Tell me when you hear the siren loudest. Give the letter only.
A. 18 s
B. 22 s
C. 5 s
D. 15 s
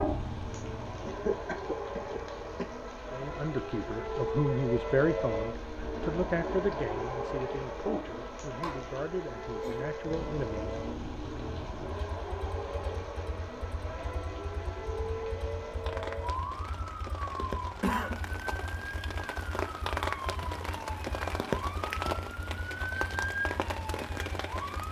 C.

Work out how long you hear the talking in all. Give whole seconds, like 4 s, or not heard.
8 s.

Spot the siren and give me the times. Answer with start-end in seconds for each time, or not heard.
0.2-24.8.